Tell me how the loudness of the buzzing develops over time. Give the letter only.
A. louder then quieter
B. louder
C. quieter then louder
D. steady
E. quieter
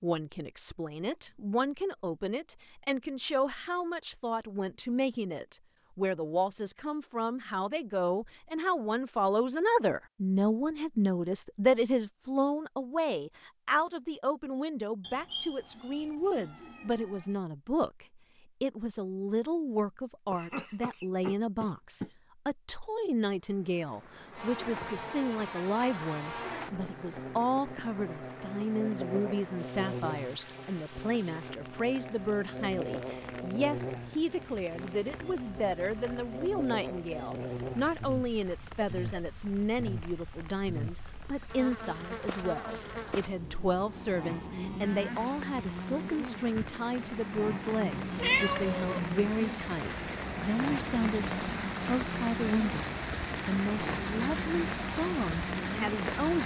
D.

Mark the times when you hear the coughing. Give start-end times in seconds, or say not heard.
20.3-22.1.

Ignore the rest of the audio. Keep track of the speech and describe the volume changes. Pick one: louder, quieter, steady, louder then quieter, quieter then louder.
steady.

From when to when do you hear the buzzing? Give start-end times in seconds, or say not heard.
24.3-56.4.